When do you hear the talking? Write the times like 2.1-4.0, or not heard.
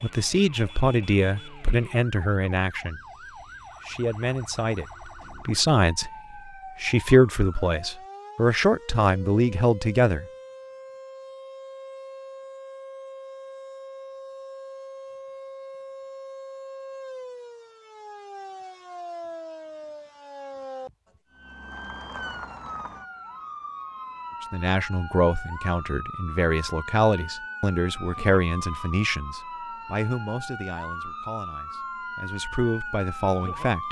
0.0-3.0, 3.8-6.1, 6.8-10.2, 24.4-33.8.